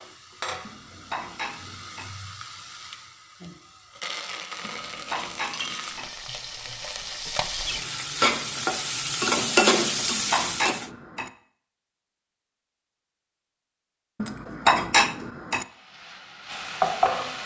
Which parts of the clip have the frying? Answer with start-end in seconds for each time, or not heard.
0.0-10.8, 15.6-17.4.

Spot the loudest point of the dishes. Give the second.
15 s.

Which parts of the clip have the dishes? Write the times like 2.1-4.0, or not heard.
0.7-2.1, 4.6-6.1, 9.8-11.3, 14.2-15.7.